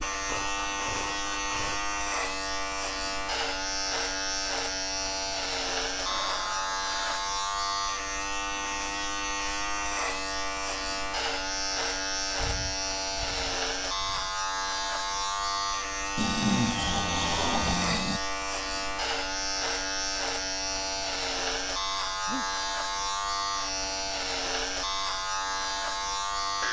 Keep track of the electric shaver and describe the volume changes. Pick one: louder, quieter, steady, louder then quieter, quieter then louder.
steady.